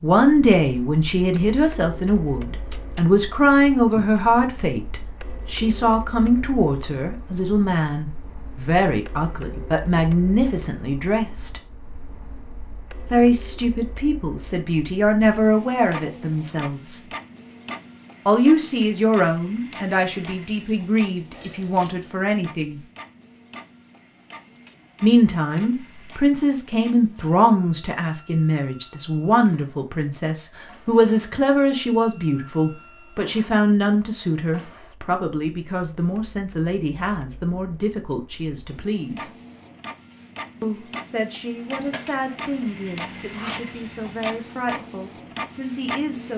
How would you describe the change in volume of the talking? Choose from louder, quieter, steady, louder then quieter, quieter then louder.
quieter.